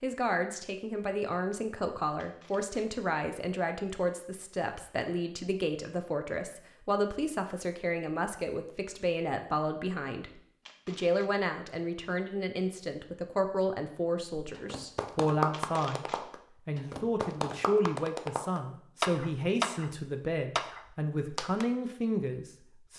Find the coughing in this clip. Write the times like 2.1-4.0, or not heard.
not heard.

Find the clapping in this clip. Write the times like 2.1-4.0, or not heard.
14.3-21.6.